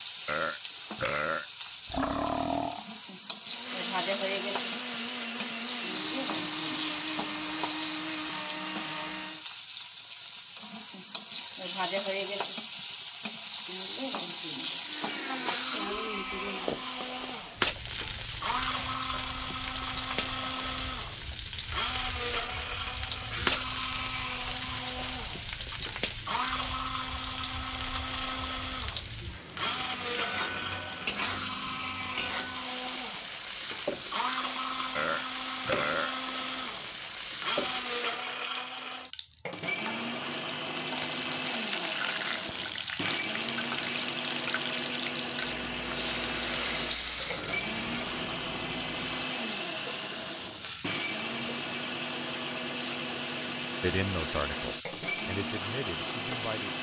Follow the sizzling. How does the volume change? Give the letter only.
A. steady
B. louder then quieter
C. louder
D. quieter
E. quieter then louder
A.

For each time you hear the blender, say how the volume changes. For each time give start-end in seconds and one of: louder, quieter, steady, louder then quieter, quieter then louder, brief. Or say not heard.
3.5-9.4 steady
14.8-56.7 steady.